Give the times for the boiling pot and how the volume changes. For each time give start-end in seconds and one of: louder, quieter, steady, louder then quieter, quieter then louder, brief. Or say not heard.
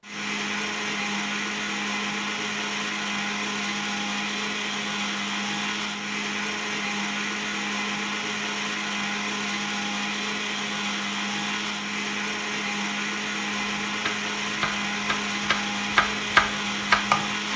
not heard.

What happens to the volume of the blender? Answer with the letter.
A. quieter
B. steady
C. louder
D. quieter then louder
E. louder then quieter
B.